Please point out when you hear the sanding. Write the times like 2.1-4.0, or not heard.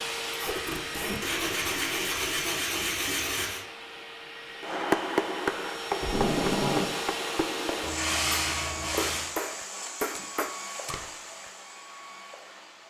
1.2-3.6, 7.8-9.3.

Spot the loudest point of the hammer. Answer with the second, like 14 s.
5 s.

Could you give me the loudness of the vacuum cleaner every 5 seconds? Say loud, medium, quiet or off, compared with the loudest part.
loud, loud, medium.